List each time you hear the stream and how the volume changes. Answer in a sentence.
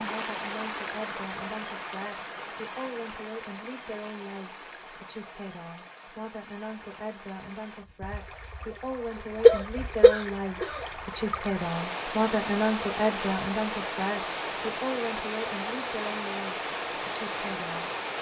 You can hear the stream from 0.0 to 18.1 s, getting quieter then louder.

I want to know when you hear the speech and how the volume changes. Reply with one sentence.
You can hear the speech from 0.0 to 17.9 s, getting louder then quieter.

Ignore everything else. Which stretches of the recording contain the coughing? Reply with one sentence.
You can hear the coughing from 9.4 to 10.8 s.